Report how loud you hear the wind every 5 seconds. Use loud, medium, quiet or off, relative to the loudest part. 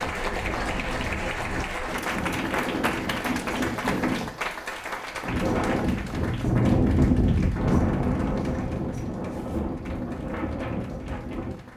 medium, loud, medium.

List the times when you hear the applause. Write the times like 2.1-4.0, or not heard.
0.0-11.7.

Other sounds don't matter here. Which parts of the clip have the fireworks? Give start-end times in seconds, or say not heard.
not heard.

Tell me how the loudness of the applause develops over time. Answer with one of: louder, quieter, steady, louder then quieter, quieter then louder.
quieter.